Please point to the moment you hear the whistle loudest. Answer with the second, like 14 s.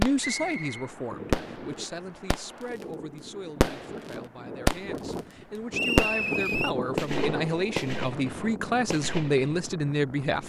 6 s.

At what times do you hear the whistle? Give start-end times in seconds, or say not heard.
0.2-0.9, 5.7-6.8.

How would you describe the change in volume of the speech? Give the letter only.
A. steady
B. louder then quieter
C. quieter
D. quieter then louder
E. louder
D.